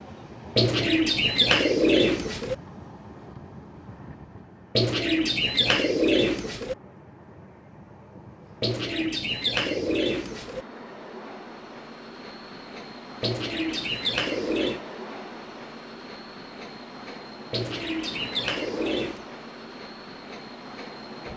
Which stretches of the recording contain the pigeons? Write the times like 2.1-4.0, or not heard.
0.6-2.5, 4.8-6.8, 8.6-10.7, 13.2-14.8, 17.5-19.2.